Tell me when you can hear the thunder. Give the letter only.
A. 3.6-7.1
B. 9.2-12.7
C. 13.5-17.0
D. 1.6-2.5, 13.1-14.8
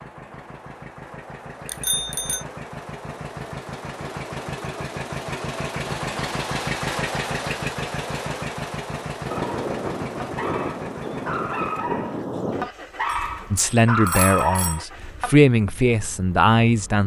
B.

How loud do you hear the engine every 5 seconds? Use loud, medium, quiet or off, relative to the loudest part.
medium, loud, medium, quiet.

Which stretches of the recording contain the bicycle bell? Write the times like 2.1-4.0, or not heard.
1.6-2.5, 13.1-14.8.